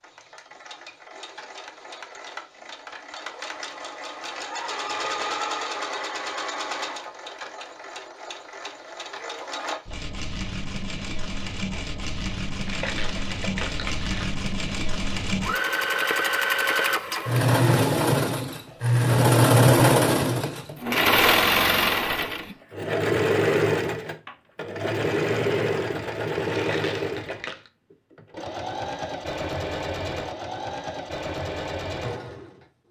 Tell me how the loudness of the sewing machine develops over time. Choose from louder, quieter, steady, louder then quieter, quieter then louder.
louder then quieter.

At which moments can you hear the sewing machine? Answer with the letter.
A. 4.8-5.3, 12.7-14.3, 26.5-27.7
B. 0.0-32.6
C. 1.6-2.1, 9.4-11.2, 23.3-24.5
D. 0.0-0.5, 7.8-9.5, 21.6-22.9
B.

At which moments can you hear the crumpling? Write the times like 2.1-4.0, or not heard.
4.8-5.3, 12.7-14.3, 26.5-27.7.